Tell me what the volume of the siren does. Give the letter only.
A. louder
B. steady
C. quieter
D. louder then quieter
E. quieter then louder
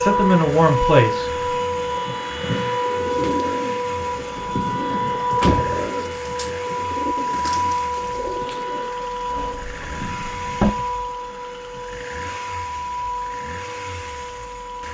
C.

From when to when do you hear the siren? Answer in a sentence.
The siren can be heard from 0.0 to 14.8 s.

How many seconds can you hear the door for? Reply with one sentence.
You can hear the door for 2 seconds altogether.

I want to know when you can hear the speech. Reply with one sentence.
You can hear the speech from 0.0 to 1.3 s.